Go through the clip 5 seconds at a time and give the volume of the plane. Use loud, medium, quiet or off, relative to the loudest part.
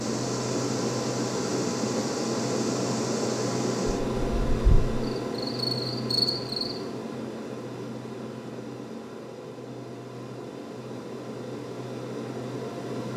loud, medium, medium.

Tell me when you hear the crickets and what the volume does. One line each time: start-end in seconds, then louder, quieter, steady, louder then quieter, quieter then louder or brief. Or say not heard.
0.0-6.8 quieter then louder.